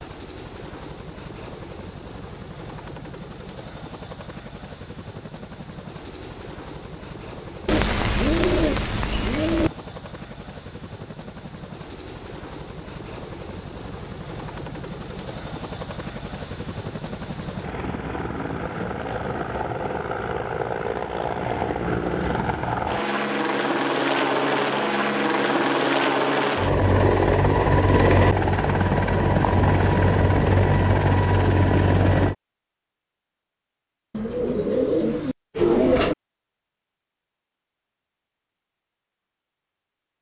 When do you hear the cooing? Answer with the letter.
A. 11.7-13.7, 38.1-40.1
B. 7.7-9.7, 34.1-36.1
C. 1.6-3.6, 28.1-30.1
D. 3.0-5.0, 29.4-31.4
B.